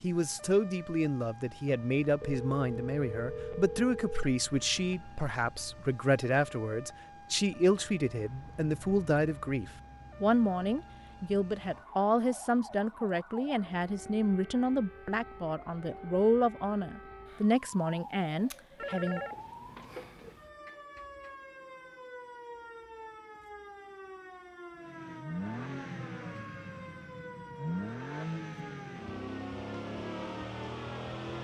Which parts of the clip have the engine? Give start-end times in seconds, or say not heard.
24.8-31.3.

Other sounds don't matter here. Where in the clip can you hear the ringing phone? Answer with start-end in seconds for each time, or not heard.
2.2-4.2, 18.8-20.4.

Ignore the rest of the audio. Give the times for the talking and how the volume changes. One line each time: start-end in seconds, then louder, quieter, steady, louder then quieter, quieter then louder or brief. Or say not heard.
0.0-19.2 steady.